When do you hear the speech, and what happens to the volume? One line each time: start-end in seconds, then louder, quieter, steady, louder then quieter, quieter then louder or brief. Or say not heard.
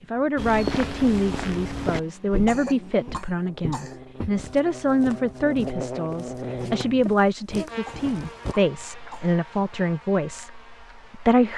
0.1-11.5 steady.